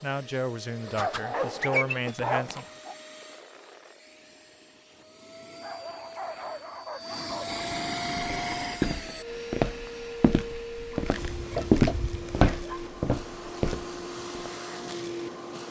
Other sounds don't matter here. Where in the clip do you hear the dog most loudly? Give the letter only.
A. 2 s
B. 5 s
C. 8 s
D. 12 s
A.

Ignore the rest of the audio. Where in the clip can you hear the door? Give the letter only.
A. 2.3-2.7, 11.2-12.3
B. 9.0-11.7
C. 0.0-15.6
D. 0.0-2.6
A.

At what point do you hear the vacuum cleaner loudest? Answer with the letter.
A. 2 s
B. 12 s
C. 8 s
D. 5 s
C.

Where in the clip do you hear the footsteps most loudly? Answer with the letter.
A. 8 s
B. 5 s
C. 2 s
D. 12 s
D.